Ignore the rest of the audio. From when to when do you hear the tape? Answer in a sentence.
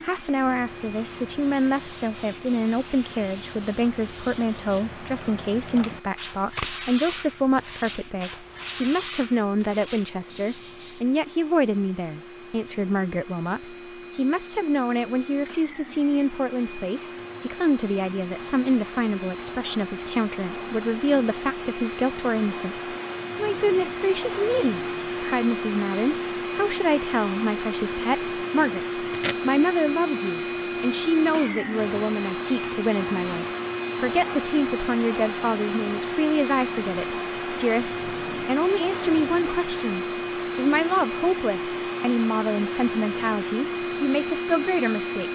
The tape can be heard from 5.7 to 6.8 s and from 28.8 to 29.5 s.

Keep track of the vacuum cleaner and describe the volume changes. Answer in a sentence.
The loudness of the vacuum cleaner goes up.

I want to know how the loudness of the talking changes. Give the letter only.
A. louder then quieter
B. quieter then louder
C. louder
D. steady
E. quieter
D.